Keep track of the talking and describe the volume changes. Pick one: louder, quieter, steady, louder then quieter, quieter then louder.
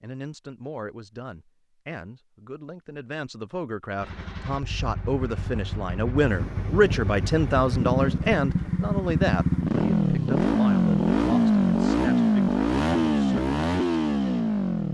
louder then quieter.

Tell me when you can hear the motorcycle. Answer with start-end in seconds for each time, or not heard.
4.0-14.9.